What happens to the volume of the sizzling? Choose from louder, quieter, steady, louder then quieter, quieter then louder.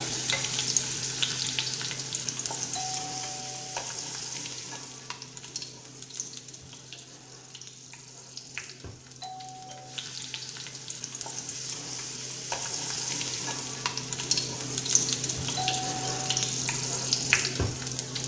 quieter then louder.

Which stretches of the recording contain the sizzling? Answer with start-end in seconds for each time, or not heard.
0.0-18.2.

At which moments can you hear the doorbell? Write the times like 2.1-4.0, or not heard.
2.8-3.7, 9.2-10.1, 15.6-16.6.